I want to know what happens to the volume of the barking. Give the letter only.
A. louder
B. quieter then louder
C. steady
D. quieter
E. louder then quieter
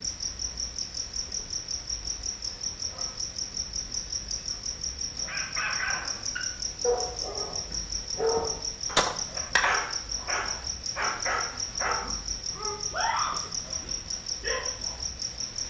C.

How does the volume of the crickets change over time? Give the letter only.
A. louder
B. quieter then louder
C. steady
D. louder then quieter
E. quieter
C.